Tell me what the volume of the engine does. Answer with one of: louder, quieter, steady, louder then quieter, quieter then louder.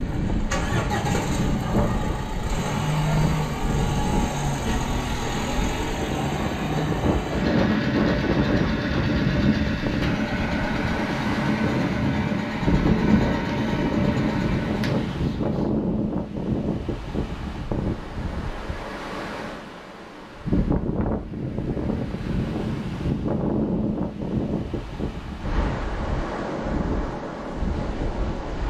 steady.